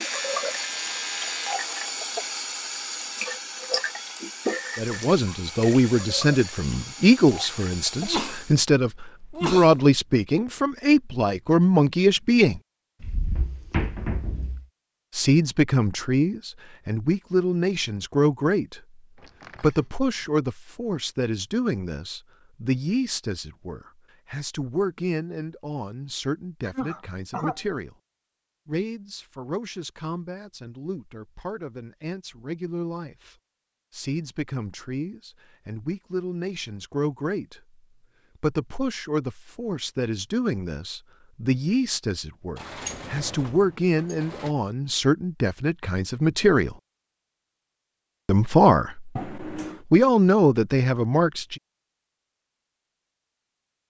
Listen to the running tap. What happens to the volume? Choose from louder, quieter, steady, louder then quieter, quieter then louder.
quieter.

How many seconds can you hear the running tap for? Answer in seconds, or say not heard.
9 s.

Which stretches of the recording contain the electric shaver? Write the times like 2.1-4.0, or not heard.
0.0-1.6.